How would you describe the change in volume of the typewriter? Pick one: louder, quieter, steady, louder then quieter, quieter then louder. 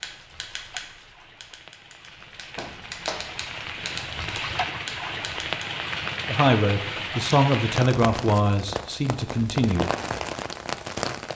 quieter then louder.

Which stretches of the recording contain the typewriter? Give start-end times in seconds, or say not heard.
0.0-5.7.